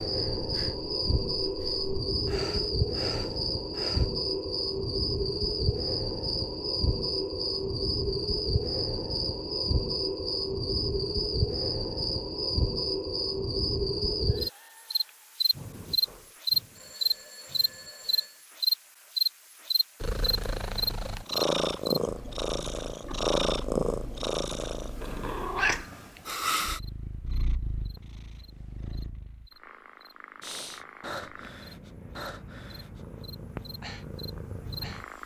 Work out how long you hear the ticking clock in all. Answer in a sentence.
The ticking clock can't be heard in this clip.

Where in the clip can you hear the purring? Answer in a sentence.
You can hear the purring from 20.0 to 35.2 s.